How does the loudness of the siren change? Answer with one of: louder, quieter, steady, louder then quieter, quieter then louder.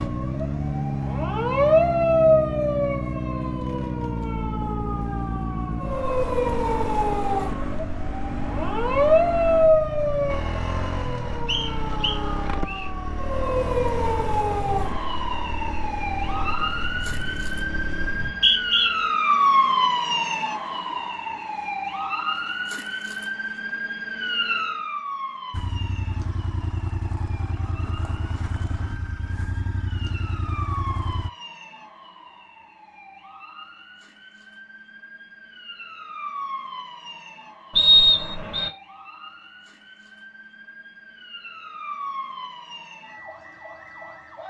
quieter.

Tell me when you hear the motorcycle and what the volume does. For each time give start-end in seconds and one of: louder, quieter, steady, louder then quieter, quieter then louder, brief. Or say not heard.
0.0-18.4 quieter
25.5-31.3 steady.